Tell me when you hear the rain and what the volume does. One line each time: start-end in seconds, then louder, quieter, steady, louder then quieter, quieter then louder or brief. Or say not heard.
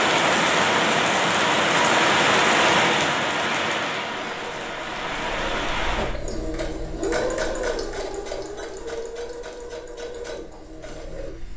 0.0-6.2 quieter.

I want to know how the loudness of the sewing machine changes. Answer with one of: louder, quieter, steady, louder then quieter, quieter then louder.
louder then quieter.